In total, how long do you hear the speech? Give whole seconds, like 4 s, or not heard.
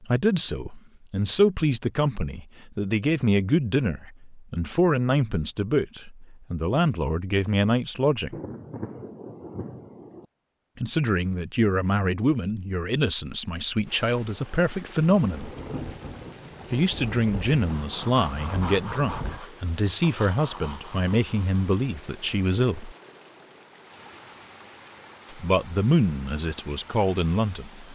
22 s.